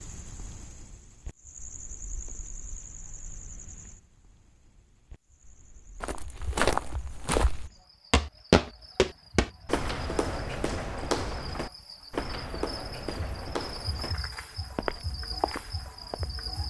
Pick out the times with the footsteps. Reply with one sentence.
The footsteps can be heard from 6.0 to 16.2 s.